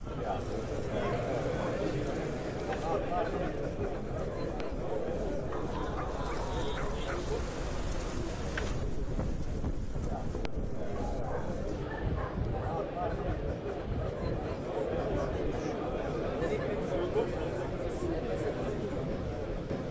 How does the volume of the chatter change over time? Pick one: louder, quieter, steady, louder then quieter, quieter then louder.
quieter then louder.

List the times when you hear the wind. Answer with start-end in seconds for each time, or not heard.
0.0-19.8.